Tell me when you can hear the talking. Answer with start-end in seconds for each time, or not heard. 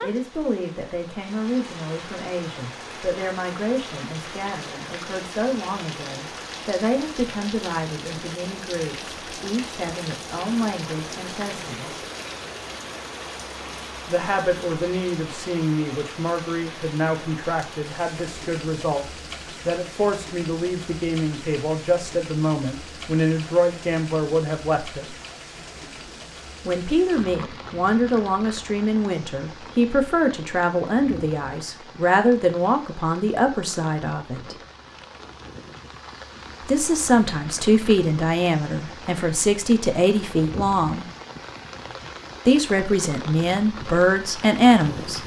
0.0-11.9, 14.1-19.1, 19.6-25.1, 26.6-34.5, 36.6-41.0, 42.5-45.2.